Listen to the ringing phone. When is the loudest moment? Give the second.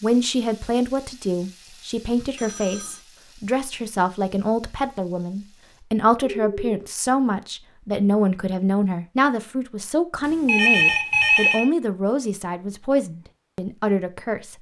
11 s.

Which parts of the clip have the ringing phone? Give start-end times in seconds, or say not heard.
2.4-3.0, 6.4-6.8, 10.4-11.7.